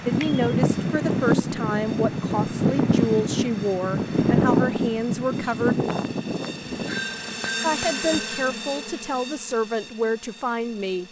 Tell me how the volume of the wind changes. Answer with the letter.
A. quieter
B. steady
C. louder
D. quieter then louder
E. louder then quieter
A.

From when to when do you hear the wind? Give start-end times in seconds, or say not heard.
0.0-7.5.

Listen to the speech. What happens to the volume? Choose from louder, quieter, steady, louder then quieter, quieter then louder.
steady.